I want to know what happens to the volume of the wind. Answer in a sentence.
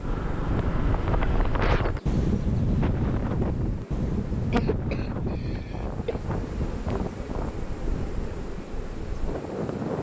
The volume of the wind goes down.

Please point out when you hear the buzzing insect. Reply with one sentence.
The buzzing insect can be heard from 0.0 to 9.9 s.